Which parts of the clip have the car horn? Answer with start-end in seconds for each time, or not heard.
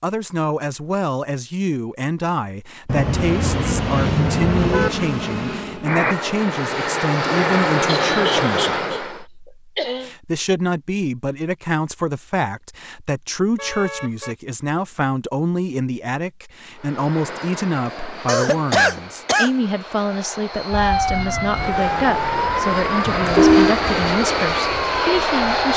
2.9-4.9, 13.6-14.3, 23.1-23.8.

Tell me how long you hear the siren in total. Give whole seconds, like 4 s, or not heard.
5 s.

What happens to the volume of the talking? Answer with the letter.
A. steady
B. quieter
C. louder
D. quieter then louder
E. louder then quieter
A.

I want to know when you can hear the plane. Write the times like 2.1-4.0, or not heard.
2.9-9.2, 16.8-25.7.